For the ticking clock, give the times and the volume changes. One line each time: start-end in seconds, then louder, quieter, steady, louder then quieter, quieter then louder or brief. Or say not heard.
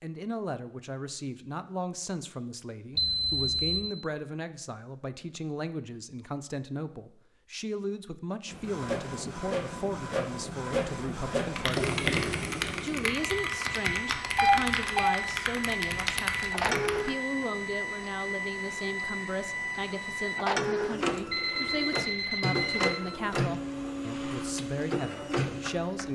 not heard.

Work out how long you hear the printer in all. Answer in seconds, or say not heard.
18 s.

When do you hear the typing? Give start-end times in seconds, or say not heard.
11.6-17.1.